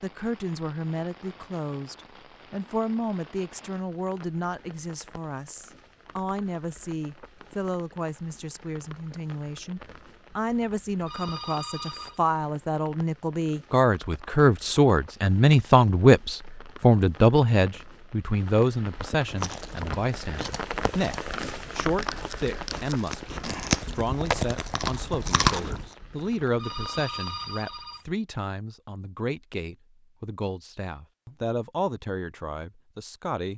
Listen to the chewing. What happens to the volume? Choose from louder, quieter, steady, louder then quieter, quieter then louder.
quieter then louder.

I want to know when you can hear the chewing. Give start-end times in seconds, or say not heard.
19.2-25.9.